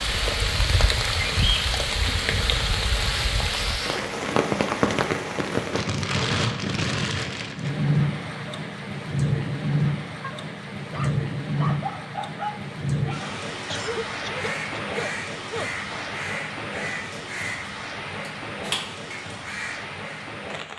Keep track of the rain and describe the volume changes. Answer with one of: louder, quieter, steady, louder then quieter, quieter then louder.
quieter.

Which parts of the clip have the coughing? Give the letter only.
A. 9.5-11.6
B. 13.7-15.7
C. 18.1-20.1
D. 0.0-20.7
B.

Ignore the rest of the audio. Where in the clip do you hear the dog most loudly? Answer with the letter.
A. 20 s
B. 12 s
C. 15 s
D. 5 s
B.